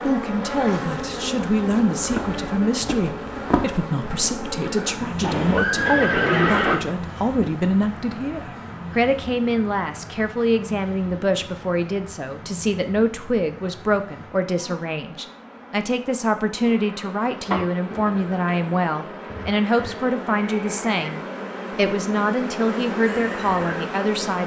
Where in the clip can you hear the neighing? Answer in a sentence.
The neighing can be heard from 5.2 to 6.8 s and from 20.4 to 21.0 s.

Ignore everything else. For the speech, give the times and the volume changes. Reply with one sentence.
You can hear the speech from 0.0 to 24.4 s, at a steady volume.